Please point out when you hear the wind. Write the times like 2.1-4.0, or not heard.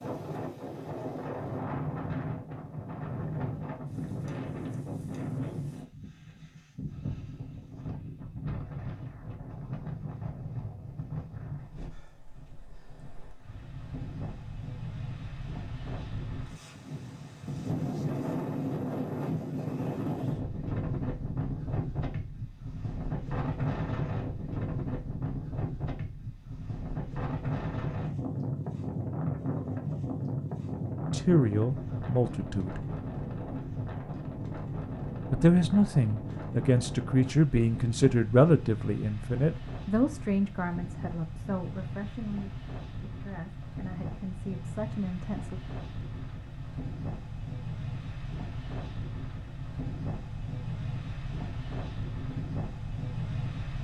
0.0-53.7.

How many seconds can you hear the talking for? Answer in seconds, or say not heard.
12 s.